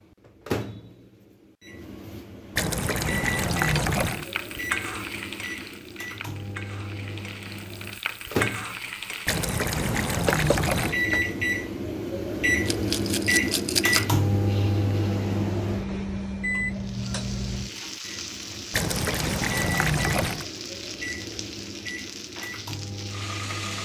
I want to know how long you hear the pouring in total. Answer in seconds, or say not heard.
5 s.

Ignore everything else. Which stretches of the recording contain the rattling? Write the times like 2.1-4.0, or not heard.
12.7-14.1.